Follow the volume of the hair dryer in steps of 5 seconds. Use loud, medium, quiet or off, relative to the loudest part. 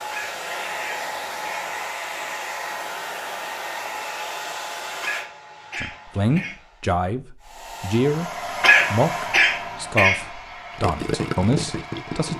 loud, loud, medium.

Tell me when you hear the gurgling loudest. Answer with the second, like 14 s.
11 s.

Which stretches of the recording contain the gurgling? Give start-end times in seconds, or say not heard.
10.7-12.3.